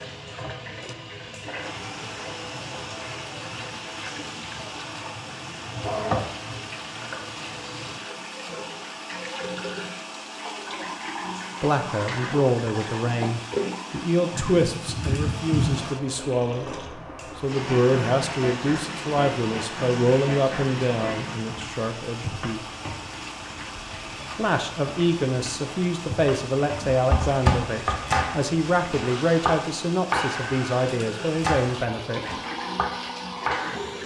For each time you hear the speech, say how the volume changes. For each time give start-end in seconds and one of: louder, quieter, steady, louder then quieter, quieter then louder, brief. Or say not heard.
11.6-22.6 steady
24.4-32.2 steady.